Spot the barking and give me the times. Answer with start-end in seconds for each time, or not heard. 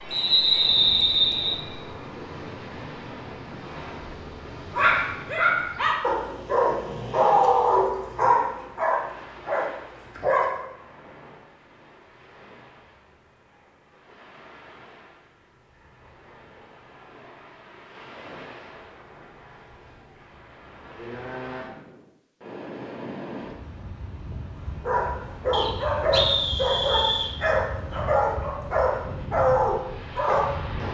4.7-10.6, 24.8-30.5.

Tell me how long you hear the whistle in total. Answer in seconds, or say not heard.
3 s.